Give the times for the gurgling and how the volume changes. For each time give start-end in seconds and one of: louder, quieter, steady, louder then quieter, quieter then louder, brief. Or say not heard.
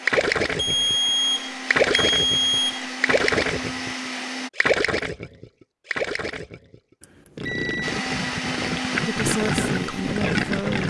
0.0-10.8 quieter then louder.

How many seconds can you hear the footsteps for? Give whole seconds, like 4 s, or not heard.
not heard.